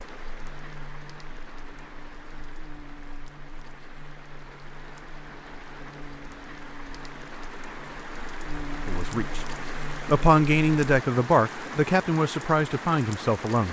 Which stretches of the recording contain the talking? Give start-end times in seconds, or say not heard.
8.8-13.6.